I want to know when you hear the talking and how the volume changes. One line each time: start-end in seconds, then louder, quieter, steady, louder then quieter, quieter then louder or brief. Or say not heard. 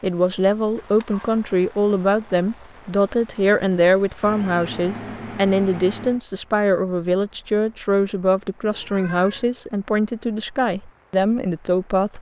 0.0-12.1 steady.